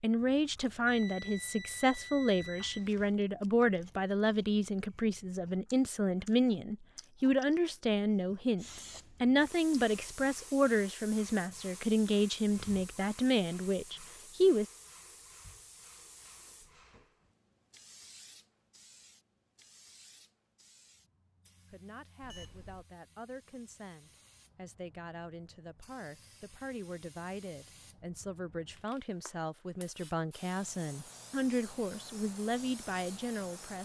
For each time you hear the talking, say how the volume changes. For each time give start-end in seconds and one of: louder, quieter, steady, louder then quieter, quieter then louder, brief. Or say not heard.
0.0-14.7 steady
21.7-33.8 louder.